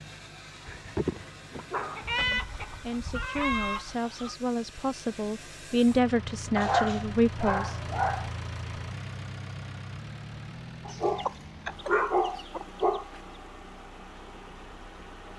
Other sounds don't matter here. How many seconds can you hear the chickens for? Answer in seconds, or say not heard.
5 s.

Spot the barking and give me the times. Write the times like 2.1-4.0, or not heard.
0.7-2.4, 6.5-8.3, 10.8-13.1.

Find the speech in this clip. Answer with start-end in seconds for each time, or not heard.
2.2-7.8.